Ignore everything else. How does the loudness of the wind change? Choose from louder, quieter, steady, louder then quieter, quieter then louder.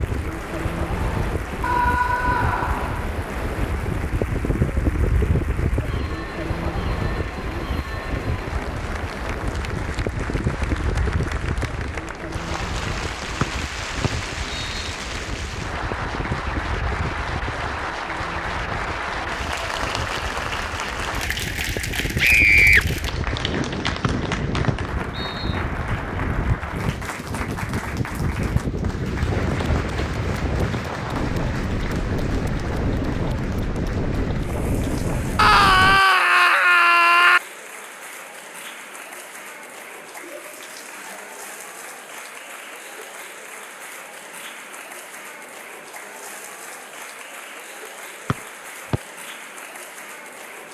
quieter then louder.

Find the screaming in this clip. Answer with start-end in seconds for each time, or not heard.
1.6-3.0, 22.1-22.9, 35.4-37.4.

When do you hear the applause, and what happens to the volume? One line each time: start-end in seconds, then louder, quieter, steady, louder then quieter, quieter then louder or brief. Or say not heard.
0.0-50.6 louder then quieter.